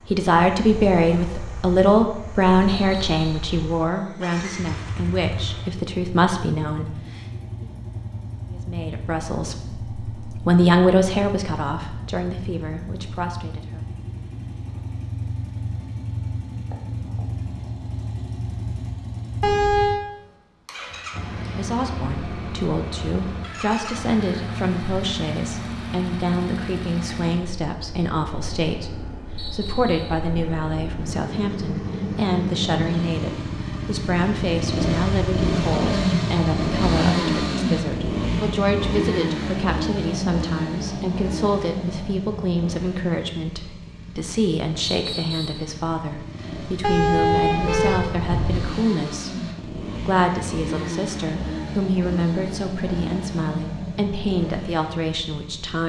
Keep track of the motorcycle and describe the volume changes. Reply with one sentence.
The volume of the motorcycle goes up, then down.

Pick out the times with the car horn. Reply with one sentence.
You can hear the car horn from 19.4 to 20.1 s and from 46.8 to 48.7 s.